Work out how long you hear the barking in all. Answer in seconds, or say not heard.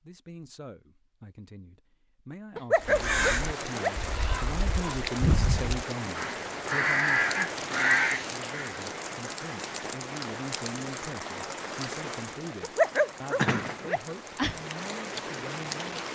3 s.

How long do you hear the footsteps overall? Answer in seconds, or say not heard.
not heard.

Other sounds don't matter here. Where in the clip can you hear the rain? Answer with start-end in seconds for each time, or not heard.
2.8-16.1.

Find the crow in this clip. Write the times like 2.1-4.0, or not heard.
2.9-8.7.